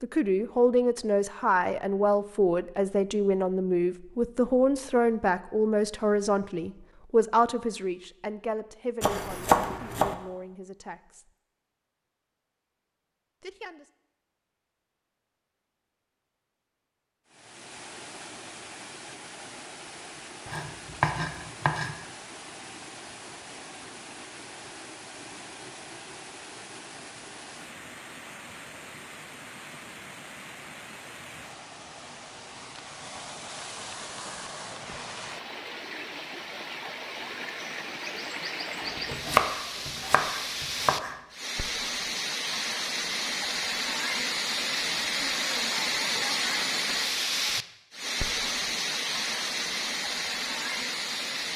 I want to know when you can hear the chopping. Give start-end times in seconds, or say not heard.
9.0-10.2, 20.4-21.9, 38.8-41.1.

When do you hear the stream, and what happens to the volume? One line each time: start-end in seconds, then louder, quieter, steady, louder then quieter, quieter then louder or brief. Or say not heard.
17.2-51.5 louder.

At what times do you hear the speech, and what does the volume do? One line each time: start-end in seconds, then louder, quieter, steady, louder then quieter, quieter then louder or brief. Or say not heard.
0.0-11.3 quieter
13.4-13.8 brief.